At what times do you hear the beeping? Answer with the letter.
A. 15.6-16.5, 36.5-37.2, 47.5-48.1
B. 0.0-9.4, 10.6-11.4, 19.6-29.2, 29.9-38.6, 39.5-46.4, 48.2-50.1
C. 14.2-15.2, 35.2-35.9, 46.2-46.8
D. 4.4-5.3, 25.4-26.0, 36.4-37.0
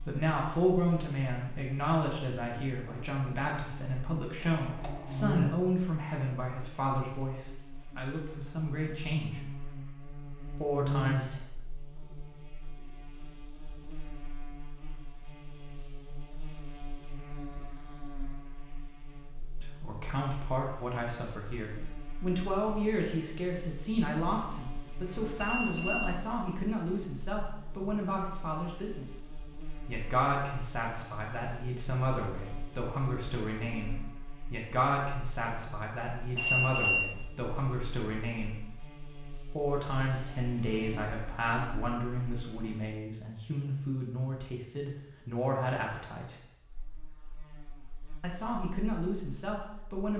D.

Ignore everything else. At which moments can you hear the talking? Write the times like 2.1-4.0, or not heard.
0.0-9.4, 10.6-11.4, 19.6-29.2, 29.9-38.6, 39.5-46.4, 48.2-50.1.